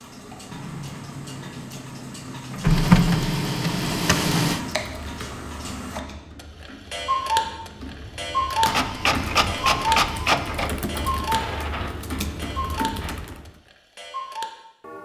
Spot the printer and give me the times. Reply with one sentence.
The printer can be heard from 0.0 to 4.6 s and from 8.7 to 13.3 s.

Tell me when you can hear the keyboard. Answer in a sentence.
You can hear the keyboard from 4.5 to 13.6 s.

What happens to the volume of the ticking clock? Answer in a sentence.
The volume of the ticking clock goes up, then down.